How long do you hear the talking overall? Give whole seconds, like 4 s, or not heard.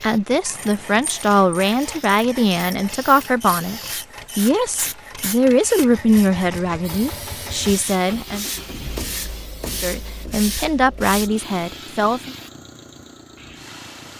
11 s.